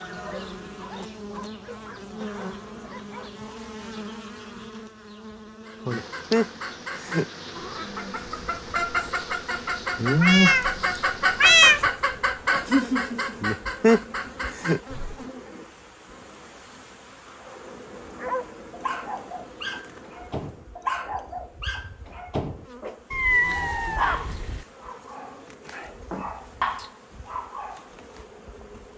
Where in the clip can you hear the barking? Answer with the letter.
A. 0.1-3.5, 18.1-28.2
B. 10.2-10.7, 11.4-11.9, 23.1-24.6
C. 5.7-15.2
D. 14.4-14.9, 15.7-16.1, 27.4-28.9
A.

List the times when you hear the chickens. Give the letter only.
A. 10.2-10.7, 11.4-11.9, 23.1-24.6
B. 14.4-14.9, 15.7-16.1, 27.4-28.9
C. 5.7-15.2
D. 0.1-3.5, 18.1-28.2
C.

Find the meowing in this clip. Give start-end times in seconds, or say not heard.
10.2-10.7, 11.4-11.9, 23.1-24.6.